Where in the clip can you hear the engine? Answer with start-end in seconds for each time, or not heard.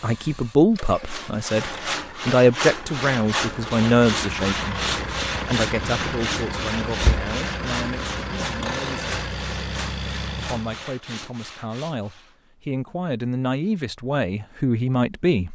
0.0-10.8.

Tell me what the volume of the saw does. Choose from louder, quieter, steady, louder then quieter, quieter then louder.
quieter.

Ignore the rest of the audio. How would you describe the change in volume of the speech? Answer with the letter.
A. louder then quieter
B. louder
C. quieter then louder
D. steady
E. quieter
C.